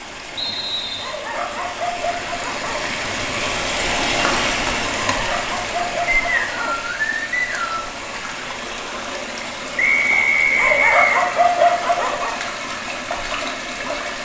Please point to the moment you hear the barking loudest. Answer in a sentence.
The loudest moment of the barking is at 12 seconds.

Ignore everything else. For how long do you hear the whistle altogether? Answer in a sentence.
The whistle can be heard for 4 seconds in total.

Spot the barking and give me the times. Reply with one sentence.
The barking can be heard from 0.9 to 2.9 s, from 5.2 to 6.8 s and from 10.6 to 12.3 s.